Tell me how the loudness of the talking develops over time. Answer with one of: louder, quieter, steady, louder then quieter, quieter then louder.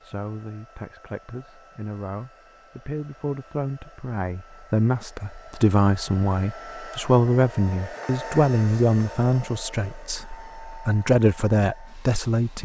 louder.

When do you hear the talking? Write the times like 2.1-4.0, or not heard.
0.0-12.6.